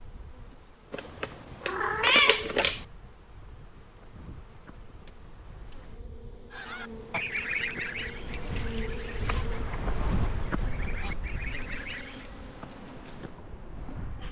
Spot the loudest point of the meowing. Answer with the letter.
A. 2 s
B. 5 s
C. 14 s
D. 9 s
A.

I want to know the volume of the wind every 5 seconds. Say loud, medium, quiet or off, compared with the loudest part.
quiet, loud, loud.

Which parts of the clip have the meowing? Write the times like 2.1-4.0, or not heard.
0.9-2.9, 9.2-9.9.